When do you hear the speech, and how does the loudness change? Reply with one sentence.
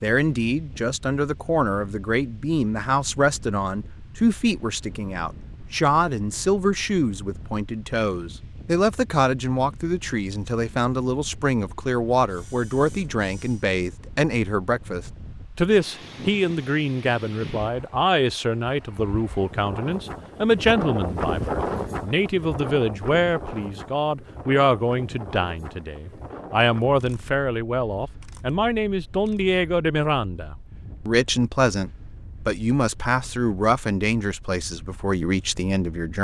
The speech can be heard from 0.0 to 36.1 s, at a steady volume.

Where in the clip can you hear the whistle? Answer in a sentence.
The whistle can't be heard in this clip.